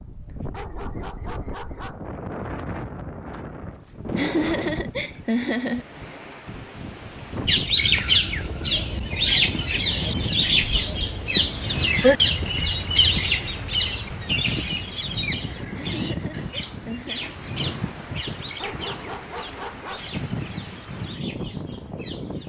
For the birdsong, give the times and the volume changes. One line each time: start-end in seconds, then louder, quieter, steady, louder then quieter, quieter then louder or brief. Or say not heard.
7.5-22.4 quieter.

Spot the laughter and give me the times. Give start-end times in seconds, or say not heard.
4.1-5.8, 7.8-8.9, 15.7-17.2.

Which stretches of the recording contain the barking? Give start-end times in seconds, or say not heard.
0.5-2.0, 18.6-20.1.